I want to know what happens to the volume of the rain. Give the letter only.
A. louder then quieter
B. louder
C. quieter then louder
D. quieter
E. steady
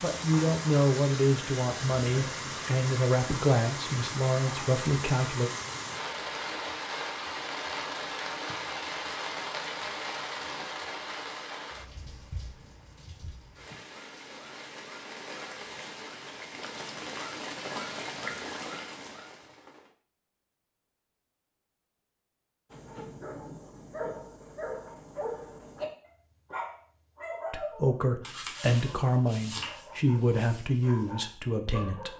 C.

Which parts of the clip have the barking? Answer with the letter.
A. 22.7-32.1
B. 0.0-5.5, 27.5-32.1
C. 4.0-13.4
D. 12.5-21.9
A.